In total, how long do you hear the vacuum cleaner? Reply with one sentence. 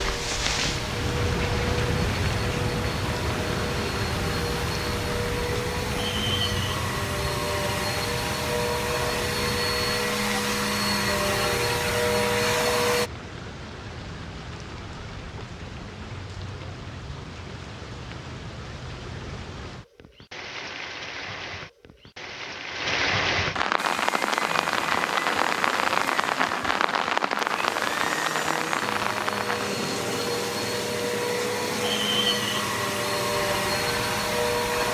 The vacuum cleaner can be heard for 24 seconds in total.